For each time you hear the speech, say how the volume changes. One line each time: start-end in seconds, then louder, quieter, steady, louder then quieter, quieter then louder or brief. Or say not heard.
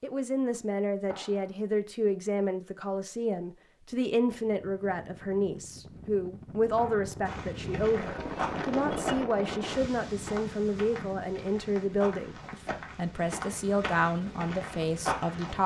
0.0-15.6 steady.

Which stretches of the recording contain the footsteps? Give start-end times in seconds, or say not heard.
7.2-15.6.